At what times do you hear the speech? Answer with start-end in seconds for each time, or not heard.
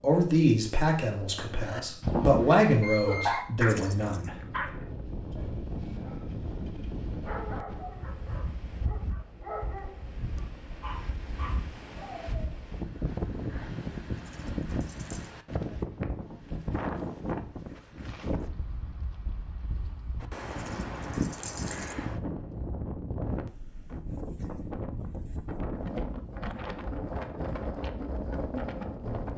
0.0-4.7.